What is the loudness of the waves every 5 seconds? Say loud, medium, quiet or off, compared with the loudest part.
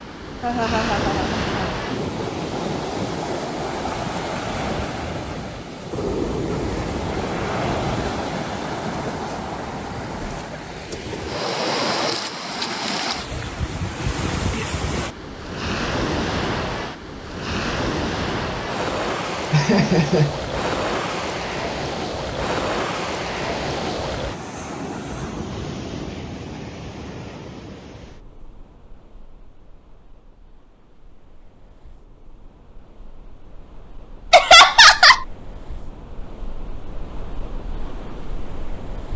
loud, loud, loud, loud, loud, medium, quiet, quiet.